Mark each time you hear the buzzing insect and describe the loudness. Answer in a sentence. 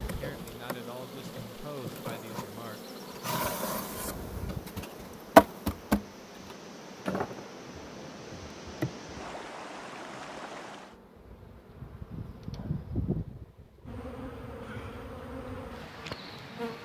The buzzing insect can be heard from 0.0 to 16.7 s, getting louder then quieter.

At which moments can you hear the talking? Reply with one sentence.
You can hear the talking from 0.0 to 2.8 s.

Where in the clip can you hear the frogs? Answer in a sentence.
You can't hear the frogs here.